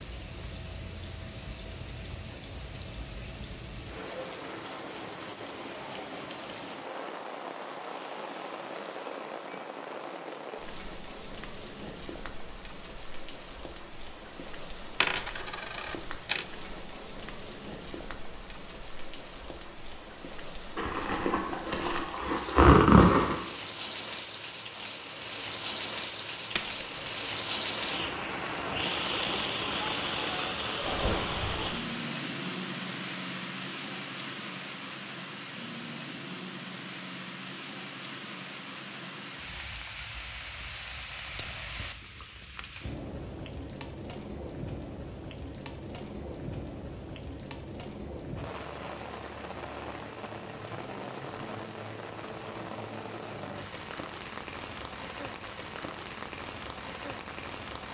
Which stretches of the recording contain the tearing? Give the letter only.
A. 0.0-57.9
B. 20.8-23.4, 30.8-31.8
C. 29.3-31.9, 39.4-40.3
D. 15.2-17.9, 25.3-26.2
B.